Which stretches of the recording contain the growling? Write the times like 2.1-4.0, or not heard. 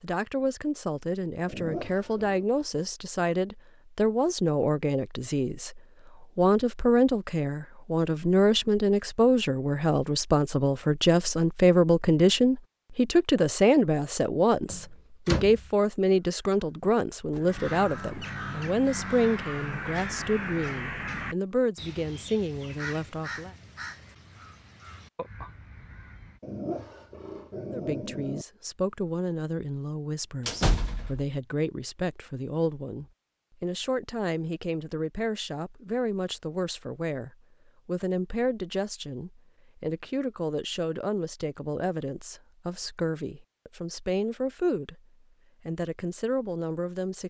1.4-2.5, 26.4-28.4.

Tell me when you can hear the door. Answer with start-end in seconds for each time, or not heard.
14.7-15.6, 30.4-31.2.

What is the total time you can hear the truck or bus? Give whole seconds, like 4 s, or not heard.
not heard.